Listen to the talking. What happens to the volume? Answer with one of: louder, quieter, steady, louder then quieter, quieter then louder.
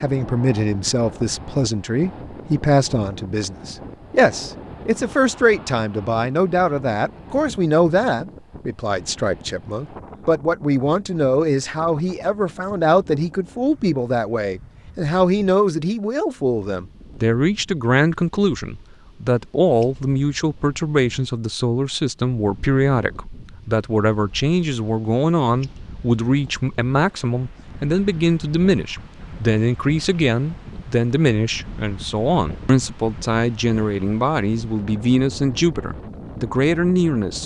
steady.